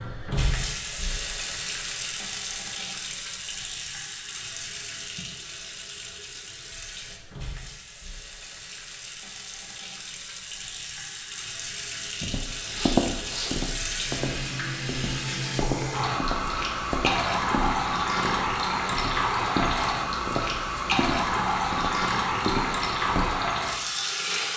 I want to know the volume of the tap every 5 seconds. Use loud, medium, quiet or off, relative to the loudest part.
medium, quiet, medium, loud, loud.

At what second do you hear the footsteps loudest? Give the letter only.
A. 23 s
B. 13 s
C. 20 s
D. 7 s
B.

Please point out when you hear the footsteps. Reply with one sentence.
The footsteps can be heard from 12.2 to 23.4 s.